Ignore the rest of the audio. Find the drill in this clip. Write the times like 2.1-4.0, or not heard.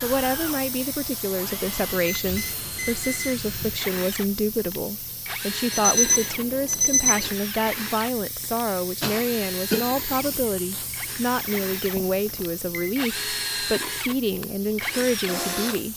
0.0-15.9.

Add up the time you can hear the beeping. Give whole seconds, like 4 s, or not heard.
4 s.